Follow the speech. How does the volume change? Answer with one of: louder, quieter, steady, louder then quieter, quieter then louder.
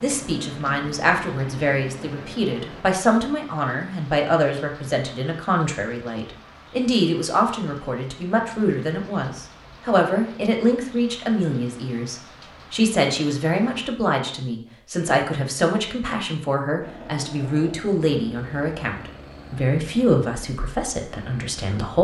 steady.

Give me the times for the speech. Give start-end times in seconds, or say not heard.
0.0-22.0.